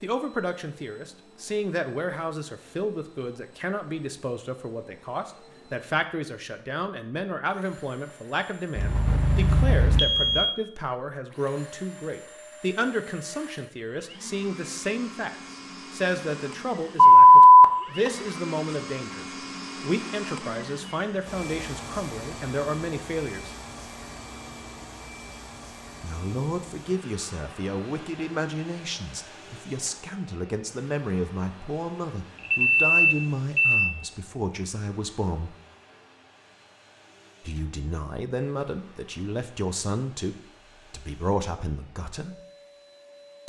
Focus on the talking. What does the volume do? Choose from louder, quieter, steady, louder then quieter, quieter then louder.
steady.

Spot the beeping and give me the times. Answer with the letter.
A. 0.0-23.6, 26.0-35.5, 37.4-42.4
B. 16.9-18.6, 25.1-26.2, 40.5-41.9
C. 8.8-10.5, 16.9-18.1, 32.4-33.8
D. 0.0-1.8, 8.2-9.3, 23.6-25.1
C.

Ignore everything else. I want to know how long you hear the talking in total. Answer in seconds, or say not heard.
38 s.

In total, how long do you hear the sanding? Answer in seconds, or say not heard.
not heard.